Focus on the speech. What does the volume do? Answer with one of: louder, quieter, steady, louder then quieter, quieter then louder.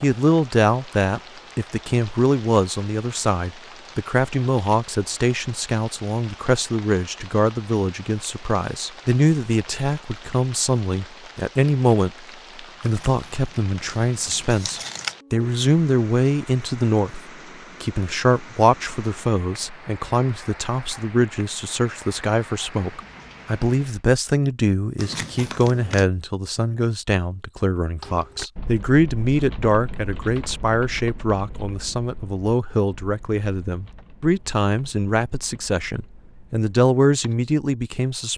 steady.